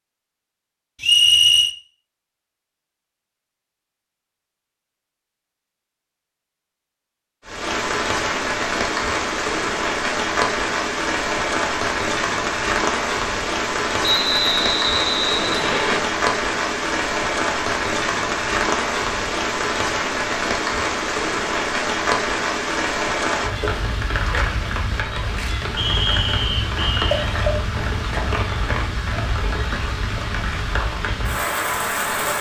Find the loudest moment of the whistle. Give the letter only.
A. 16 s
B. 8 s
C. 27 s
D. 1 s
D.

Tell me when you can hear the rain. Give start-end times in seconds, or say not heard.
7.5-32.3.